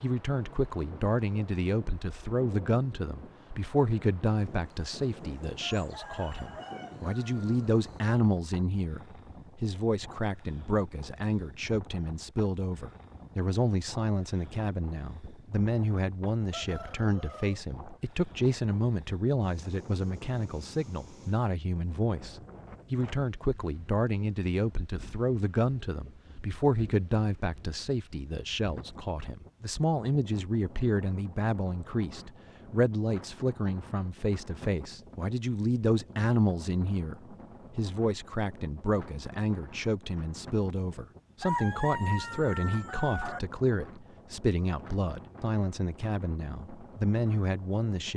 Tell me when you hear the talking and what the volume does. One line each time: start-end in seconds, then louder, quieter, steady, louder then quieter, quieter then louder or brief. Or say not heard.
0.0-48.1 steady.